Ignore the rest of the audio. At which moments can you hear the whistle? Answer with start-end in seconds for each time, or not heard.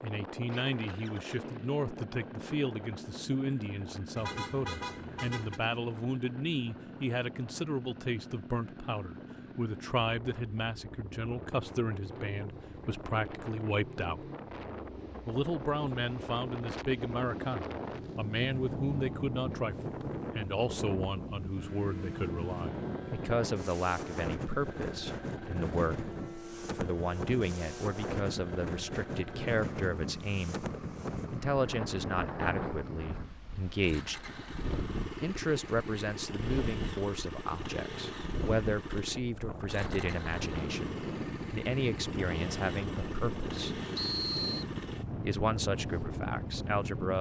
44.0-44.6.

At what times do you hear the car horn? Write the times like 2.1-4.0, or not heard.
4.2-5.6.